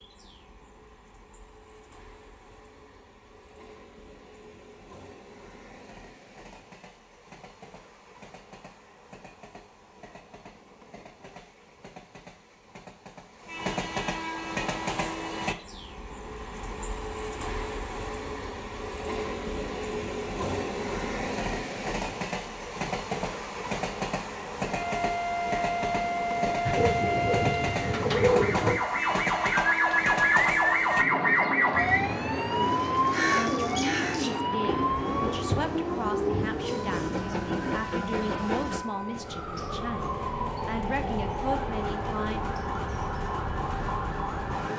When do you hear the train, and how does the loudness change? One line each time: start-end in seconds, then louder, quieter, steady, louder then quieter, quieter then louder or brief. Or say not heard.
0.0-44.7 louder.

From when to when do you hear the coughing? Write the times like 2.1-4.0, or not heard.
not heard.